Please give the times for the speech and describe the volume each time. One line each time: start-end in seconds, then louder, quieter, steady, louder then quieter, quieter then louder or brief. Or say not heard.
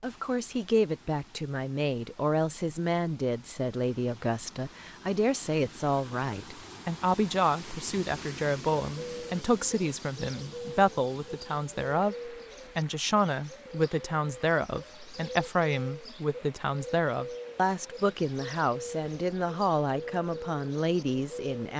0.0-21.7 steady.